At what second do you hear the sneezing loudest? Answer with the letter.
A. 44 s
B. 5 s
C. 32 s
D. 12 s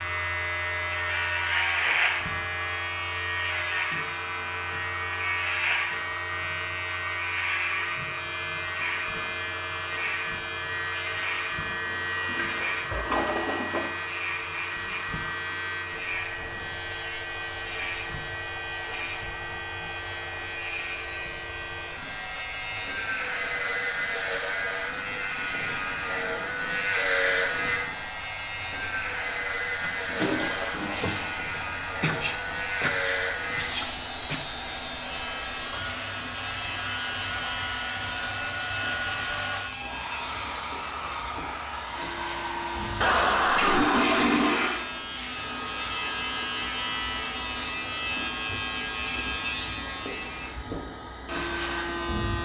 C.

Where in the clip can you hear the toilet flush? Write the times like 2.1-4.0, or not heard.
11.8-13.9, 29.8-31.4, 43.0-44.9.